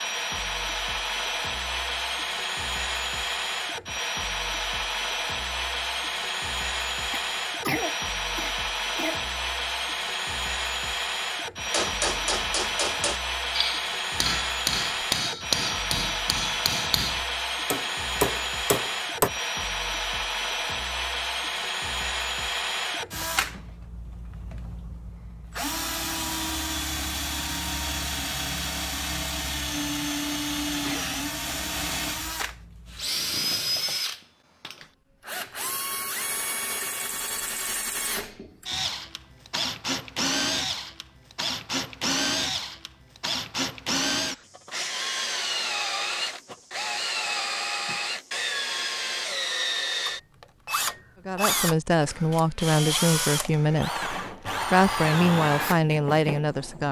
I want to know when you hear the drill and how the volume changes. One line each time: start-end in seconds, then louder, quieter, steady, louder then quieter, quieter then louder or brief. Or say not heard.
0.0-56.8 steady.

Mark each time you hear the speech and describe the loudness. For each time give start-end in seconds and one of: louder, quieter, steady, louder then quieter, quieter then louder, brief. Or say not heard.
51.2-56.8 steady.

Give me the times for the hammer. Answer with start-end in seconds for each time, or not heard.
11.7-19.3.